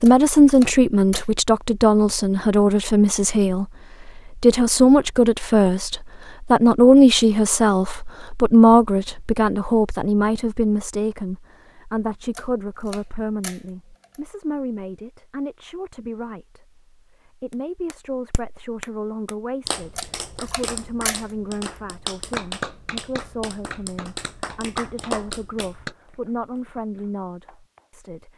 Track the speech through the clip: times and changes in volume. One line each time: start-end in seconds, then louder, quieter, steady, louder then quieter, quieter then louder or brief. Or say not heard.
0.0-28.3 quieter.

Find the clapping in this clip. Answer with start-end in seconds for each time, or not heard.
17.5-27.9.